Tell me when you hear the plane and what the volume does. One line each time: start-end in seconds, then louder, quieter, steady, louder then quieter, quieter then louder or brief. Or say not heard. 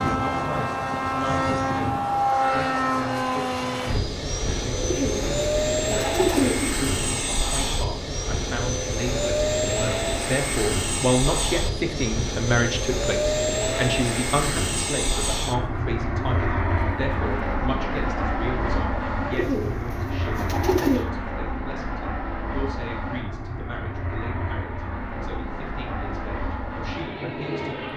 0.0-27.9 quieter.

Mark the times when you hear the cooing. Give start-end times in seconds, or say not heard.
4.8-6.8, 19.3-21.1.